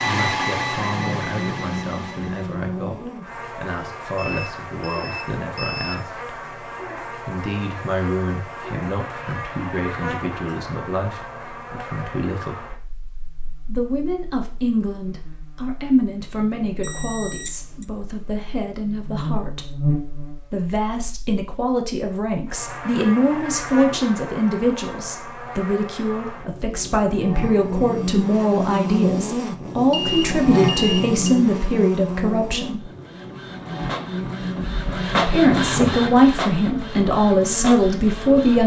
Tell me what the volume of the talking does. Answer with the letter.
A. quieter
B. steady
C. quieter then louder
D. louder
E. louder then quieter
D.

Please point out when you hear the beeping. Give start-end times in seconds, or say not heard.
4.2-6.0, 16.8-17.9, 29.9-31.1.